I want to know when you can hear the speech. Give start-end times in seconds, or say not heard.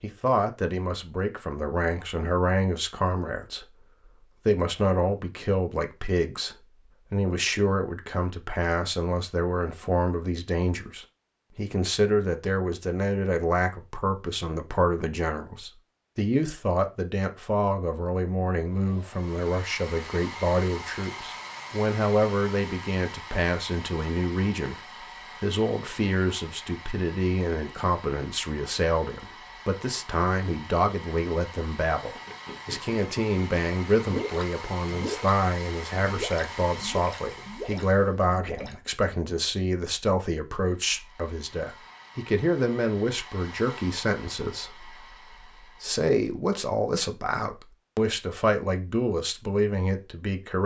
0.0-50.6.